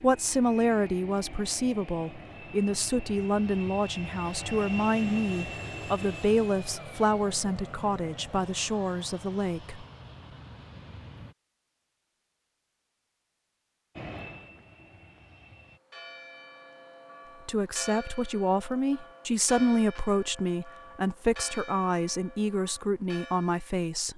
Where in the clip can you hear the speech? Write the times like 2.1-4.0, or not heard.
0.0-9.8, 17.4-24.1.